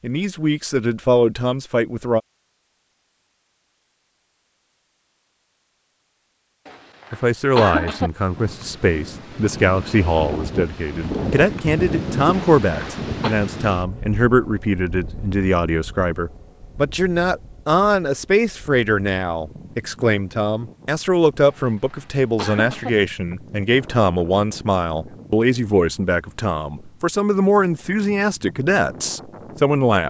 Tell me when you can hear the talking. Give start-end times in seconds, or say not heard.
0.0-2.2, 7.1-30.0.